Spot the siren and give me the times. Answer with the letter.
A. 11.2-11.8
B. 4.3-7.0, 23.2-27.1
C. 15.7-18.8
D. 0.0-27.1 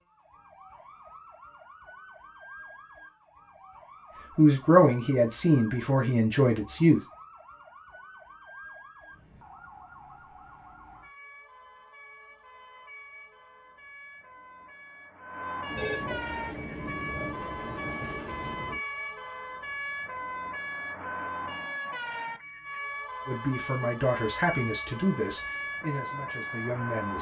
D.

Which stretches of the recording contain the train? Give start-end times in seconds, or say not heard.
15.7-18.8.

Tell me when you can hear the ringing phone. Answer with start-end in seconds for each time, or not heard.
15.8-16.4.